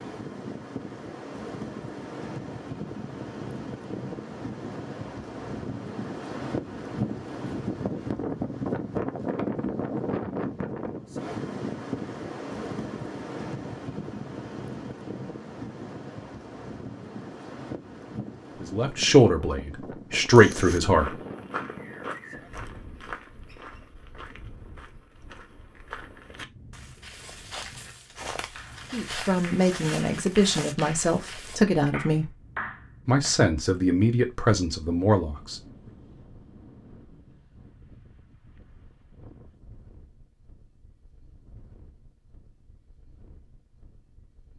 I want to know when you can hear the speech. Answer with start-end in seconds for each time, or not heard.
18.6-21.2, 28.9-32.3, 33.0-35.6.